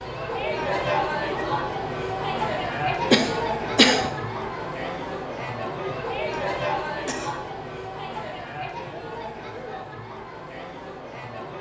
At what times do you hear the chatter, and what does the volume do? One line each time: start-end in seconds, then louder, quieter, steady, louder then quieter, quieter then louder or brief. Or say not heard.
0.0-11.5 quieter.